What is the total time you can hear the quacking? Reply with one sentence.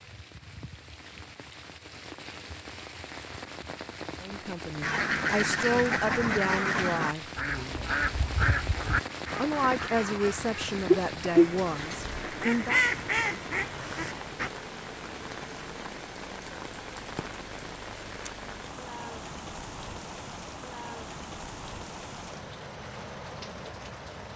The quacking can be heard for 10 seconds in total.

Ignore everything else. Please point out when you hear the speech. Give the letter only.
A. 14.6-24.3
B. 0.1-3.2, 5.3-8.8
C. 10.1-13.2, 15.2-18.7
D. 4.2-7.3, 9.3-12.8
D.